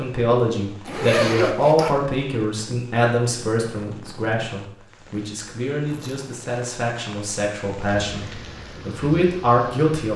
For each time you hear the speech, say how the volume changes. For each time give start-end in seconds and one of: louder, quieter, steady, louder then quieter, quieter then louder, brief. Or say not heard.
0.0-10.1 quieter then louder.